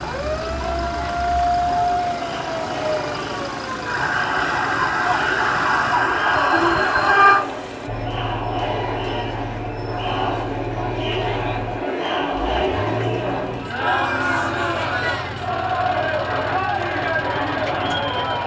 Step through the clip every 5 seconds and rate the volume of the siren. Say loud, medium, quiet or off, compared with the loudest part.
medium, loud, off, off.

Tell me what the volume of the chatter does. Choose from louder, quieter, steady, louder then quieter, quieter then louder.
louder.